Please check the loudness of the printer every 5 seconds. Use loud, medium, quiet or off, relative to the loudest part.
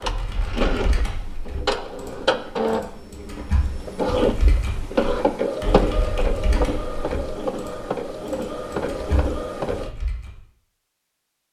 loud, loud, off.